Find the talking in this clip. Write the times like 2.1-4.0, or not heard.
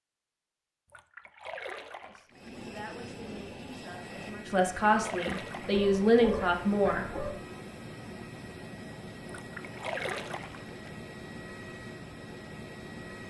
2.0-7.0.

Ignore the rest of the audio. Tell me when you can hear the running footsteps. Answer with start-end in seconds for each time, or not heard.
not heard.